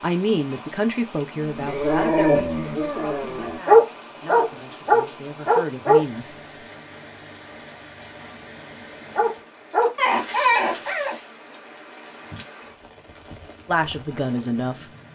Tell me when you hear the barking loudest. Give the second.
4 s.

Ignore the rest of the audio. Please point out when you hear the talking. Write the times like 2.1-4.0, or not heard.
0.0-6.2, 13.7-14.8.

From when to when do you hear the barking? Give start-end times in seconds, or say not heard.
1.4-6.0, 9.2-11.2.